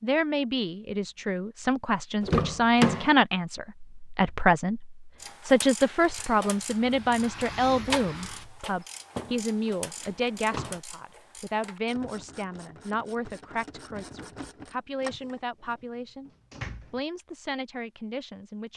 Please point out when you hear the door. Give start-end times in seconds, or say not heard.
2.2-3.1, 9.2-10.8, 15.2-17.0.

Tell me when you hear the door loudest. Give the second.
3 s.